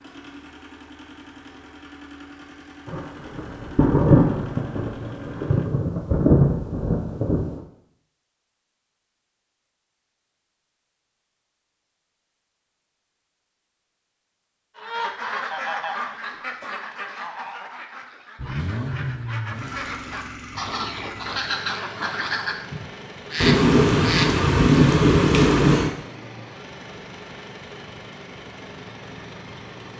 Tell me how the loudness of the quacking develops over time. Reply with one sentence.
The volume of the quacking goes down, then up.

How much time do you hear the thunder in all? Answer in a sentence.
The thunder can be heard for 7 seconds in total.